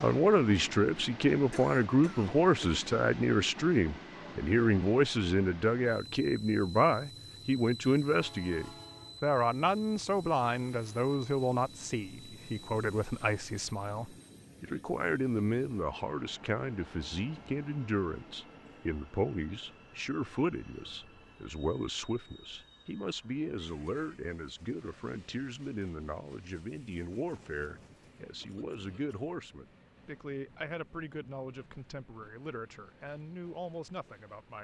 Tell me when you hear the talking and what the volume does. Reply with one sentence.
You can hear the talking from 0.0 to 34.5 s, getting quieter.